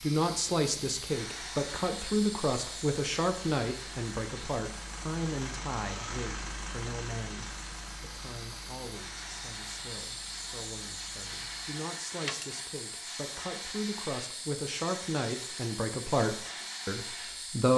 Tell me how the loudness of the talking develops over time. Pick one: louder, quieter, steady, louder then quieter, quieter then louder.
quieter then louder.